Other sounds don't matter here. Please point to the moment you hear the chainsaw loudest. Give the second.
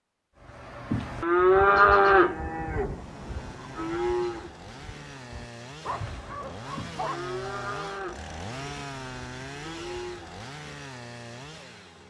9 s.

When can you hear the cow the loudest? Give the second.
2 s.